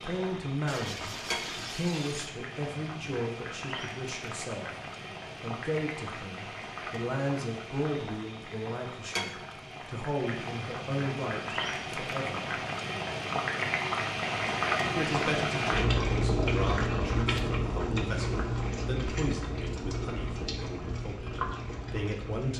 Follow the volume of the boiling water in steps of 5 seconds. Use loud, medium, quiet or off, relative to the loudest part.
medium, medium, loud, loud, medium.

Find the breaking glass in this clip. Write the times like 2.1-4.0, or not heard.
0.7-2.4.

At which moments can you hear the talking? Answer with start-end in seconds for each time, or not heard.
0.0-4.7, 5.4-12.5, 14.9-22.5.